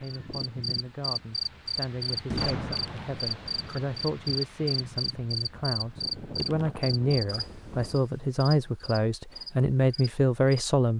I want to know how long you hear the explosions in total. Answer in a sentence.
You can hear the explosions for 2 seconds altogether.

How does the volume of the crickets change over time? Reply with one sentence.
The volume of the crickets goes down.